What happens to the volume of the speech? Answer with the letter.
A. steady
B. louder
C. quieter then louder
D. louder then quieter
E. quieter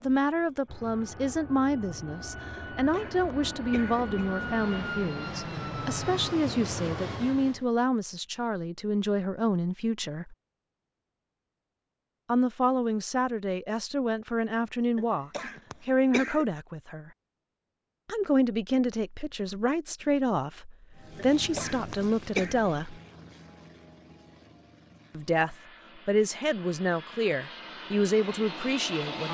A.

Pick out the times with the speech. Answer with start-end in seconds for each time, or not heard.
0.0-10.3, 12.2-17.1, 18.1-23.0, 25.1-29.2.